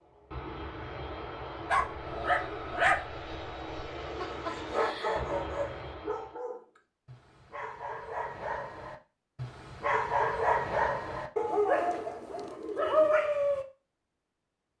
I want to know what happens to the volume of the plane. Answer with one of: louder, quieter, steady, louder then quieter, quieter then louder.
steady.